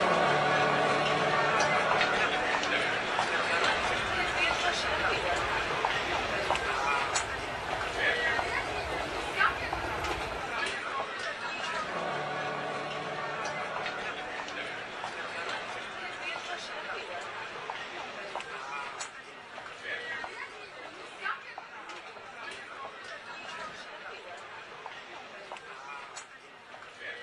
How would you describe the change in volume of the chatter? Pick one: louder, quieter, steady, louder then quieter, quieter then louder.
quieter.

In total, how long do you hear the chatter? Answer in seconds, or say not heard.
27 s.